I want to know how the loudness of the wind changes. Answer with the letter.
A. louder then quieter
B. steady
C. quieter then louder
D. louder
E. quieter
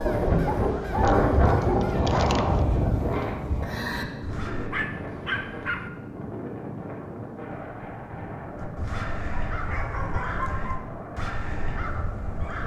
E.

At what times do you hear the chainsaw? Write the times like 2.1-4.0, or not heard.
not heard.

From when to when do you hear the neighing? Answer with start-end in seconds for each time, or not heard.
not heard.